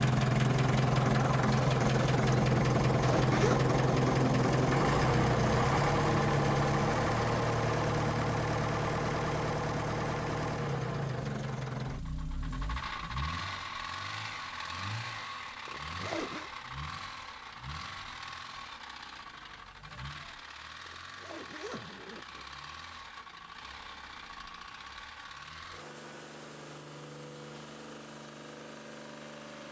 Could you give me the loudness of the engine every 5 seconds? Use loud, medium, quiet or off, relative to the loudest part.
loud, loud, medium, quiet, quiet, quiet.